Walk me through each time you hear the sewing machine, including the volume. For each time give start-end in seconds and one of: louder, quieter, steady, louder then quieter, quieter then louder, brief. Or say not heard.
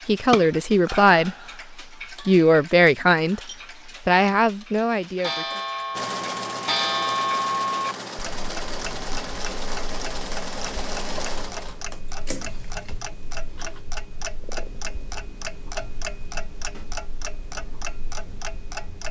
5.9-13.8 quieter.